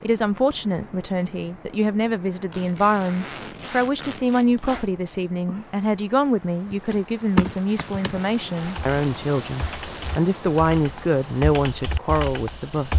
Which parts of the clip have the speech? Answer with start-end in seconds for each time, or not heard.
0.0-12.9.